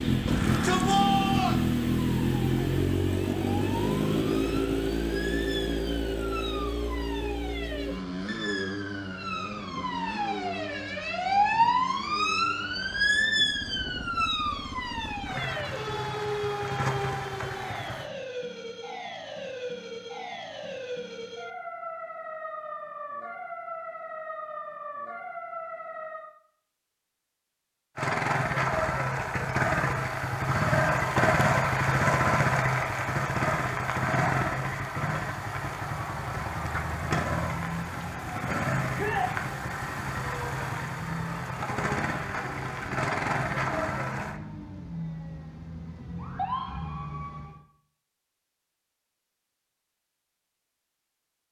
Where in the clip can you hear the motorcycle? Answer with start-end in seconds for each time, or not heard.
0.0-18.1, 27.9-44.4.